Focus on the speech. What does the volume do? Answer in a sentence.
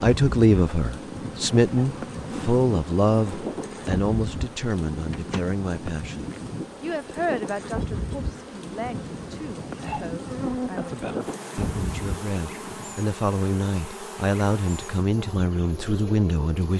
The loudness of the speech goes down, then up.